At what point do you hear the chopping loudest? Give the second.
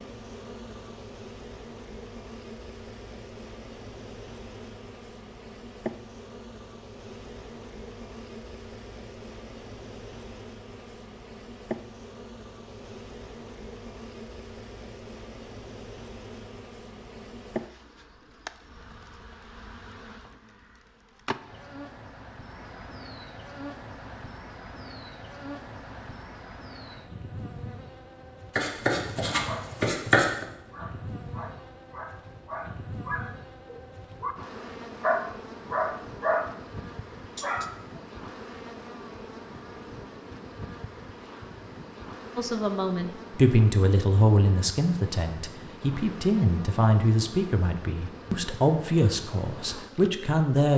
30 s.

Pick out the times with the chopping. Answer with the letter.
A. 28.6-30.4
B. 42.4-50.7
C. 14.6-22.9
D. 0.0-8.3
A.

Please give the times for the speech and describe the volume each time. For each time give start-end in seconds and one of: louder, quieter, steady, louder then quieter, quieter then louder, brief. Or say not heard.
42.4-50.7 steady.